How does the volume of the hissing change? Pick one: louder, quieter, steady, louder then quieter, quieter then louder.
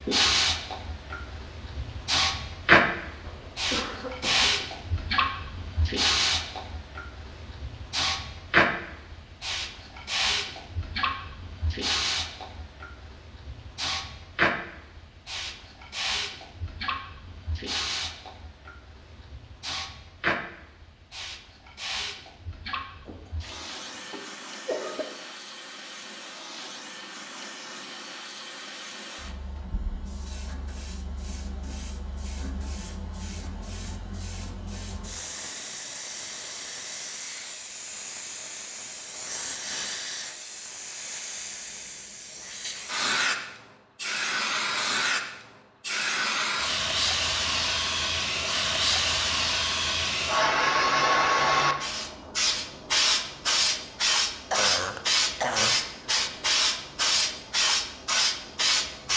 quieter then louder.